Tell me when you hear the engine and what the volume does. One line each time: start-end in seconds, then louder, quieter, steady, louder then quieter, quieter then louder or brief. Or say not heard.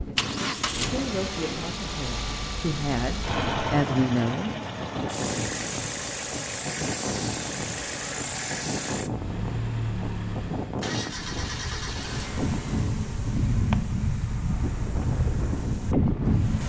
0.0-16.6 quieter.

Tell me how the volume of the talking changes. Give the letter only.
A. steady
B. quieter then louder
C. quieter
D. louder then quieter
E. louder
B.